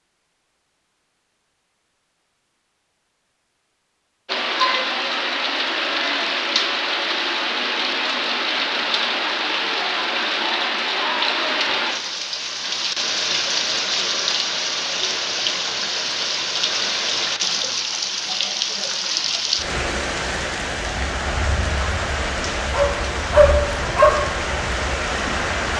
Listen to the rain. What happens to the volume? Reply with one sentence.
The loudness of the rain stays about the same.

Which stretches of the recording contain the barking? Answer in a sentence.
The barking can be heard from 22.7 to 24.2 s.